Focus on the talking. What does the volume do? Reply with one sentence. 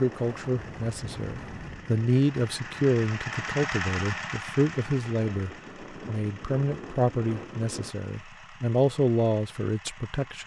The loudness of the talking stays about the same.